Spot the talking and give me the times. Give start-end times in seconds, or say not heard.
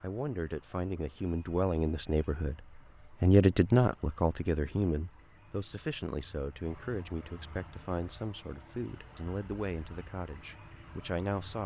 0.0-11.6.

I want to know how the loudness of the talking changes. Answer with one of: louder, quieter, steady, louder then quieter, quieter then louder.
louder then quieter.